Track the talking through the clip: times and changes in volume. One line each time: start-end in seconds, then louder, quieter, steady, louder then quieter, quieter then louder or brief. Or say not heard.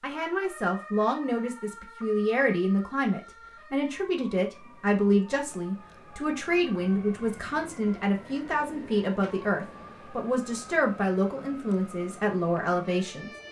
0.0-13.3 steady.